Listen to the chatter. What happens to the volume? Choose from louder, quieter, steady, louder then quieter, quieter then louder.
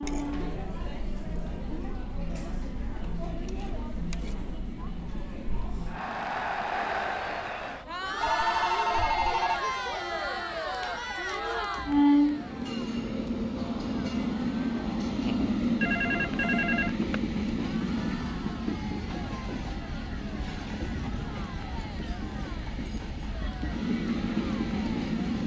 louder then quieter.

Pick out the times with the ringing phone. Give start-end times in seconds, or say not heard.
8.2-9.7, 15.8-17.2.